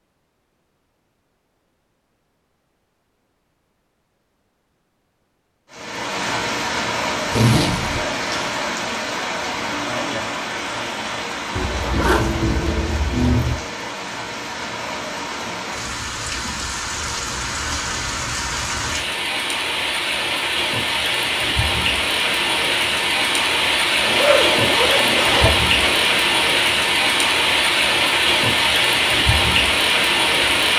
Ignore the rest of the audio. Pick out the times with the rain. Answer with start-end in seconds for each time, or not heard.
5.7-30.7.